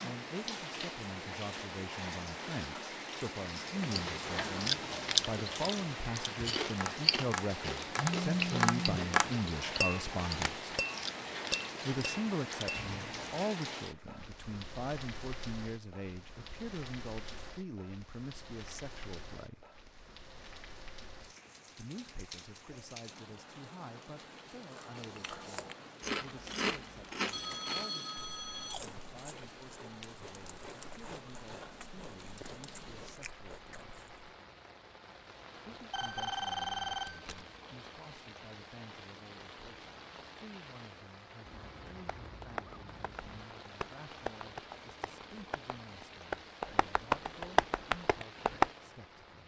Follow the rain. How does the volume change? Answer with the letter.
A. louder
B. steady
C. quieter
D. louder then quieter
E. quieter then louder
C.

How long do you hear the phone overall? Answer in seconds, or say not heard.
4 s.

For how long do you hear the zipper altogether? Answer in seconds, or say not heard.
3 s.